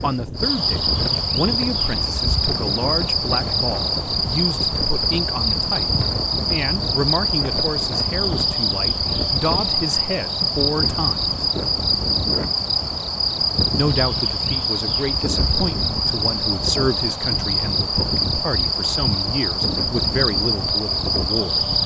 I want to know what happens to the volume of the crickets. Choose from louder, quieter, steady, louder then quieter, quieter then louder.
steady.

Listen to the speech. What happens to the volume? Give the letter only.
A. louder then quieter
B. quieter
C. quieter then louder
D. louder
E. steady
E.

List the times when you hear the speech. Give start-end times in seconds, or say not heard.
0.0-11.3, 13.8-21.7.